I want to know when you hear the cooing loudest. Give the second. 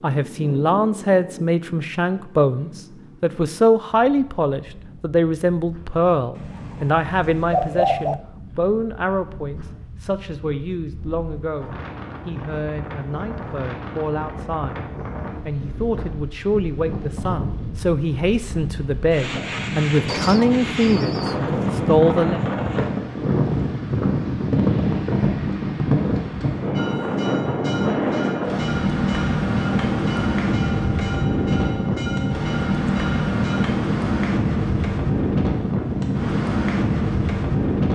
8 s.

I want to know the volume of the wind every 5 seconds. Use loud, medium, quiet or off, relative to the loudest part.
quiet, quiet, quiet, medium, loud, loud, loud, loud.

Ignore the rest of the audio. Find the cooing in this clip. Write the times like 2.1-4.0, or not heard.
6.3-8.2, 20.1-21.8.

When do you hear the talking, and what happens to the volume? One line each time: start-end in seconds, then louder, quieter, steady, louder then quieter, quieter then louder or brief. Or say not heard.
0.0-22.4 quieter then louder.